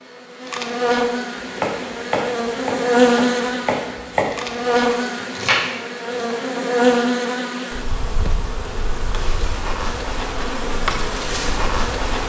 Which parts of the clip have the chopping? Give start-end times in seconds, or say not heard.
1.4-6.4.